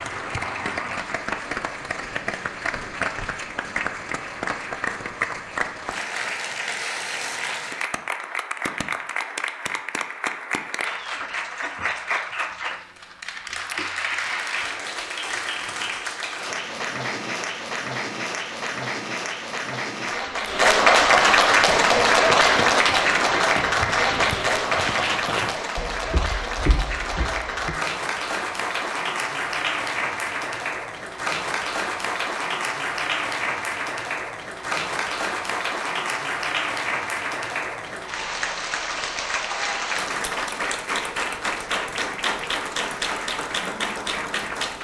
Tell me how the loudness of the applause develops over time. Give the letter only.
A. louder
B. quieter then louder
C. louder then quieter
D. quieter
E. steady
C.